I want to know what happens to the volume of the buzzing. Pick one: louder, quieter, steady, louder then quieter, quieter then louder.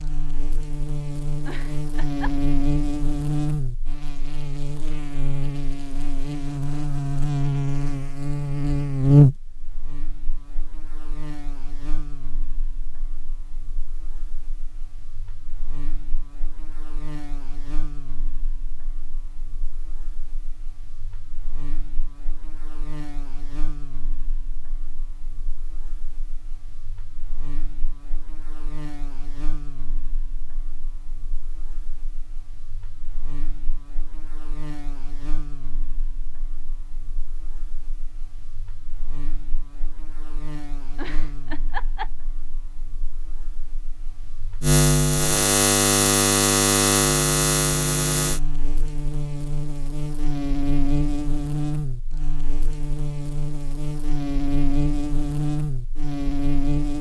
quieter then louder.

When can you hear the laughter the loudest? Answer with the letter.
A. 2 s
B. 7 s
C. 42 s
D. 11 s
C.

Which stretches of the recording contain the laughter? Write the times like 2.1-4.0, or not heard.
1.4-2.5, 41.0-42.1.